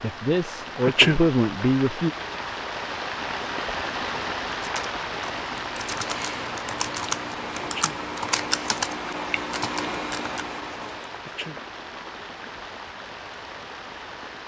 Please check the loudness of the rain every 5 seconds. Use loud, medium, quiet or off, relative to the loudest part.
loud, loud, medium.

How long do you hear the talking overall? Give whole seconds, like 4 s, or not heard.
2 s.